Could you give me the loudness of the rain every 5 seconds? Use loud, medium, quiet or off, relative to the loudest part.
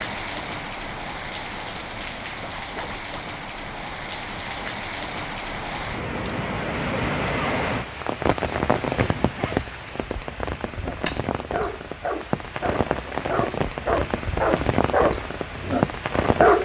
medium, loud, loud, loud.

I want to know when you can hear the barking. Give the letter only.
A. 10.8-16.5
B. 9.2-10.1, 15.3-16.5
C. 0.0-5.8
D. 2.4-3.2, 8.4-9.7
A.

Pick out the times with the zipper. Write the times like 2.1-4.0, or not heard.
2.4-3.2, 8.4-9.7.